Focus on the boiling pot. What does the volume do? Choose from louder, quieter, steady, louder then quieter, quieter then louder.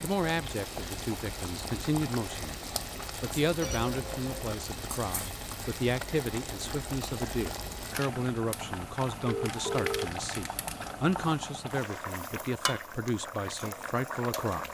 steady.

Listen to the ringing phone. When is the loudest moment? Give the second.
10 s.